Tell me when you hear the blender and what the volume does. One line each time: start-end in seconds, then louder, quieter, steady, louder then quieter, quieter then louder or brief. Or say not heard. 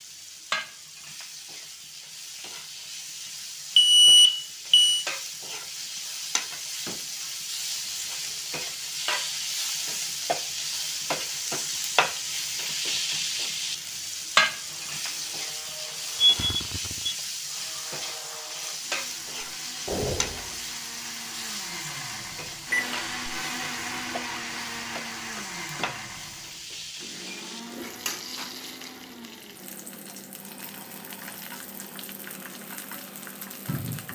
14.7-34.0 louder then quieter.